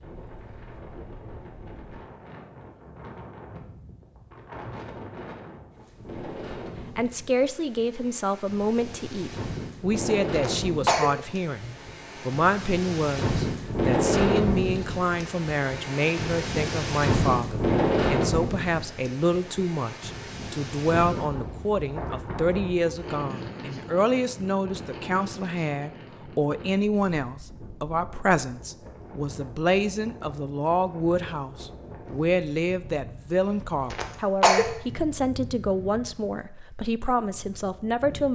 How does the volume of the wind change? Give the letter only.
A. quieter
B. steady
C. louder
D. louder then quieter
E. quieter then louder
D.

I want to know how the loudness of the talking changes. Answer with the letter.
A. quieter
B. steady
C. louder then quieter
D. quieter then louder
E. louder
B.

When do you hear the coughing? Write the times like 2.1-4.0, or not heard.
10.3-11.1, 33.9-34.6.